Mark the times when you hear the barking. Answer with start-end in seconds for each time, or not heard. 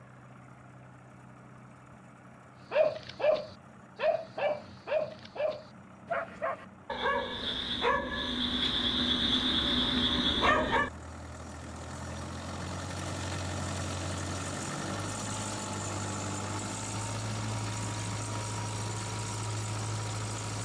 2.7-10.9.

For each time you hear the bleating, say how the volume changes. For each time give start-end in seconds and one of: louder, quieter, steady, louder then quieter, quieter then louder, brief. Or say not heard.
not heard.